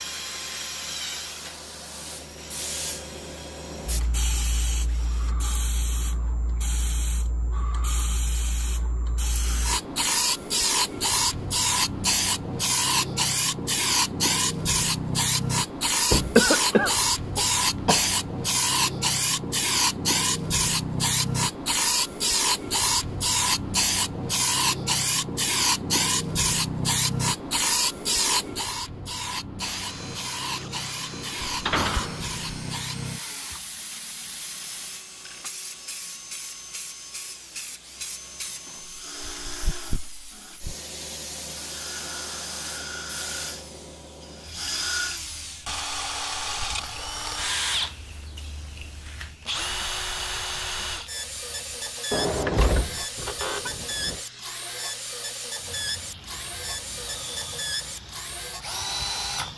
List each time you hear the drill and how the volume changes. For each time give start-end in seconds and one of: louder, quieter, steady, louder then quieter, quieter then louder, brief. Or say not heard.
0.0-5.3 quieter
29.6-59.5 louder.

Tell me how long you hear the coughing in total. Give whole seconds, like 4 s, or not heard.
2 s.